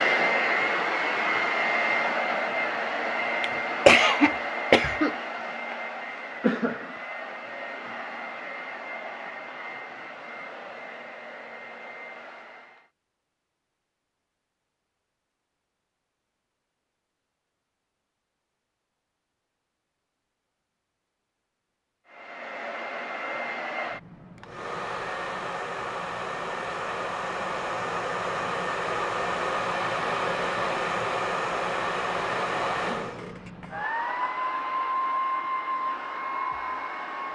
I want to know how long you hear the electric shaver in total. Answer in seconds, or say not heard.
not heard.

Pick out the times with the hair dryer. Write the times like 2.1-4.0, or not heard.
0.0-12.9, 22.1-37.3.